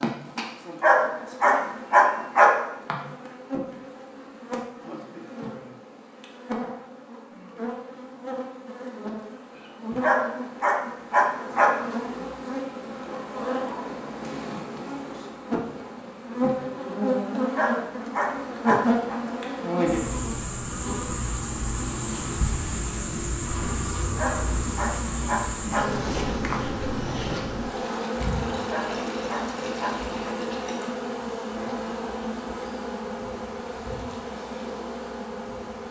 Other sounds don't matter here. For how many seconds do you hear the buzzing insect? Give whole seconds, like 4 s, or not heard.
36 s.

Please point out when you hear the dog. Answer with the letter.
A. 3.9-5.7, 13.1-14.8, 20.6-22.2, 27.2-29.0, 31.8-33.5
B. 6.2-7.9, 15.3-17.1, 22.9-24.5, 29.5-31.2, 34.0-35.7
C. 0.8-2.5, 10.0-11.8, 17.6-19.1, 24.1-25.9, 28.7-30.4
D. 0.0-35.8
C.